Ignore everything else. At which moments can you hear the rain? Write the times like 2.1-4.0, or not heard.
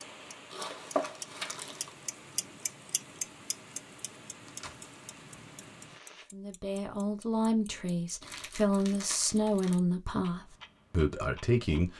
0.0-6.3.